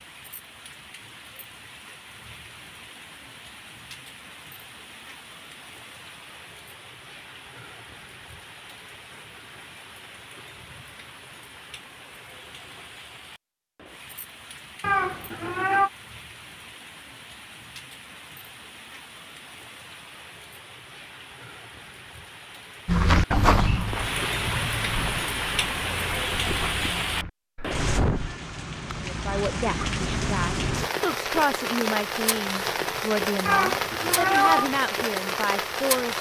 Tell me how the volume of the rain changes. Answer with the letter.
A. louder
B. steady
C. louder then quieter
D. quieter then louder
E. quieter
A.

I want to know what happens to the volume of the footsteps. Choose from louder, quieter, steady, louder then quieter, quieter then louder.
quieter.